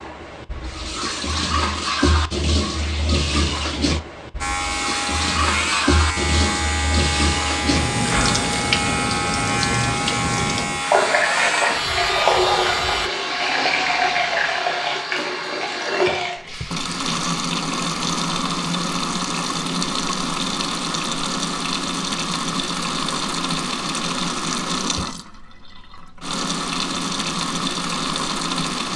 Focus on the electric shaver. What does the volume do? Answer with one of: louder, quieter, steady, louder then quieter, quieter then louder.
steady.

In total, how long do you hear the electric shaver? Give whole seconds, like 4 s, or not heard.
9 s.